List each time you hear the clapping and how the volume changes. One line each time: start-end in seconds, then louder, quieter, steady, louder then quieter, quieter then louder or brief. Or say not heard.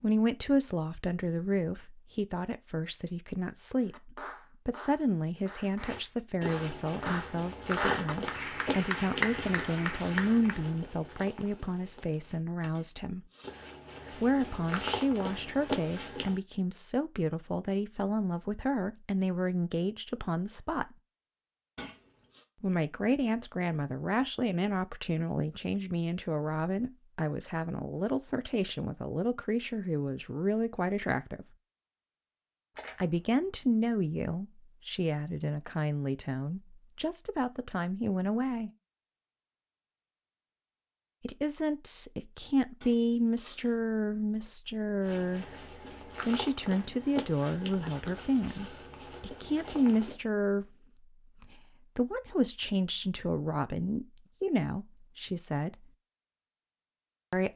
3.9-10.7 louder.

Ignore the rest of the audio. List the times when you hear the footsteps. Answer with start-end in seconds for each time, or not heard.
5.8-16.4, 45.0-50.1.